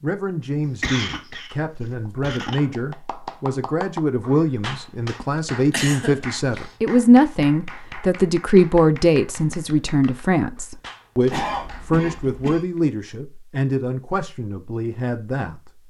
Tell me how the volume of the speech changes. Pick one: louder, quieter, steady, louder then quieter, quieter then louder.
louder then quieter.